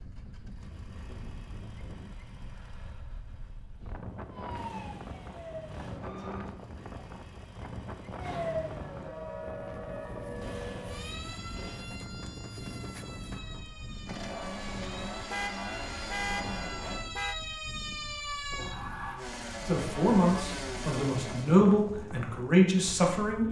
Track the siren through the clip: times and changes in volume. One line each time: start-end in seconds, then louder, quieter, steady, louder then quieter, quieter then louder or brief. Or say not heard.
4.3-6.5 brief
8.2-19.2 quieter then louder.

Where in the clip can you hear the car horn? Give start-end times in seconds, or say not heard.
15.3-17.4.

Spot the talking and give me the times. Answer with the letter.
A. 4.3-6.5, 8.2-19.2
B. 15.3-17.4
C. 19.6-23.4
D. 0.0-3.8
C.